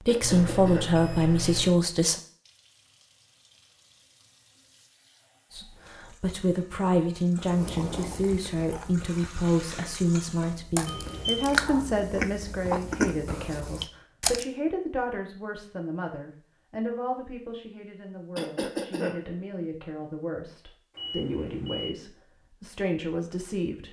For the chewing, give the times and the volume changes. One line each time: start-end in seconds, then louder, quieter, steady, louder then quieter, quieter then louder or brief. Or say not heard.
7.4-14.4 quieter then louder.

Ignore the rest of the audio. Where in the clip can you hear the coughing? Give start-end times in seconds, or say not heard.
0.1-0.9, 18.4-19.2.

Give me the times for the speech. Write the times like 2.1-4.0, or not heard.
0.1-2.1, 5.5-23.8.